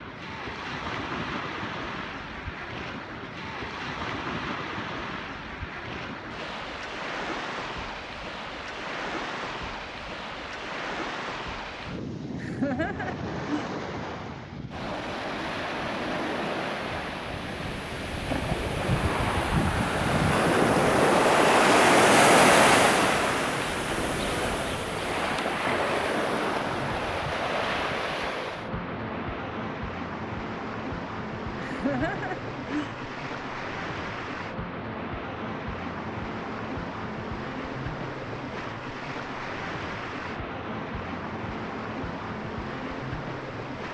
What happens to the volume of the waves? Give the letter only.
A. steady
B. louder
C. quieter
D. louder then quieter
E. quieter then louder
D.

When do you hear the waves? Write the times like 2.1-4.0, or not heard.
0.0-43.8.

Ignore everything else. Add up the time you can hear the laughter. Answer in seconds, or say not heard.
3 s.